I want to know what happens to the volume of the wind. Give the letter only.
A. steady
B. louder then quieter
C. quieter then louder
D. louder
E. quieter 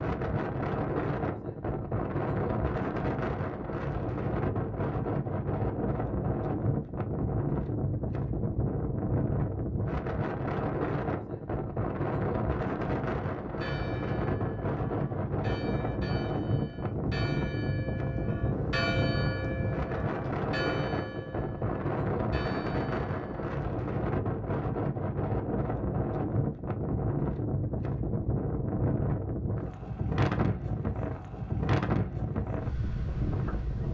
A.